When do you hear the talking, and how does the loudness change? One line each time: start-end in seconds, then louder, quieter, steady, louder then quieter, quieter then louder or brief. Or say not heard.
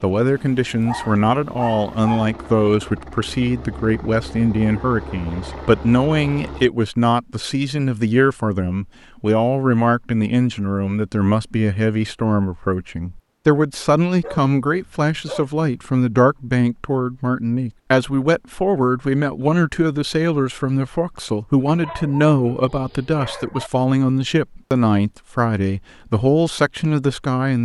0.0-27.6 steady.